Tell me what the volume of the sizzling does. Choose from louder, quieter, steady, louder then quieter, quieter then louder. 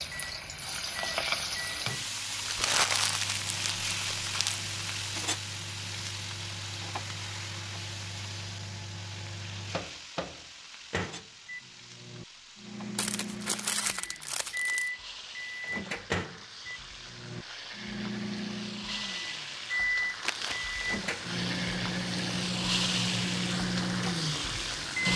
quieter then louder.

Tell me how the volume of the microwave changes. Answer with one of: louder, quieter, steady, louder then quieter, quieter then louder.
louder.